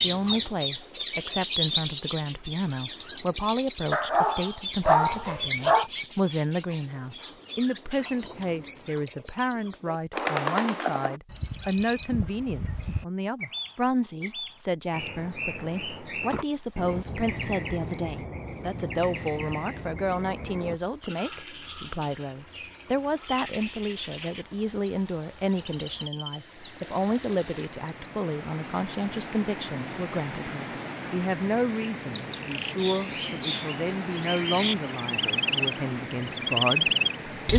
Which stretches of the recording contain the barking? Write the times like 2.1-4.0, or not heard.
3.9-5.9.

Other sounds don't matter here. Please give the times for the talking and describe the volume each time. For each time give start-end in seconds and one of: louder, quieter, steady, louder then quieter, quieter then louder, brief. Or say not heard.
0.0-37.5 steady.